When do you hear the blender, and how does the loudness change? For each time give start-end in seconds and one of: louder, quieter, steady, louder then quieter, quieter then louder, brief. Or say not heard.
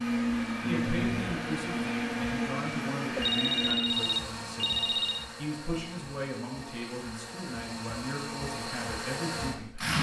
0.0-9.9 quieter then louder.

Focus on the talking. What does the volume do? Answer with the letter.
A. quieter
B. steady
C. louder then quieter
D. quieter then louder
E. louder
B.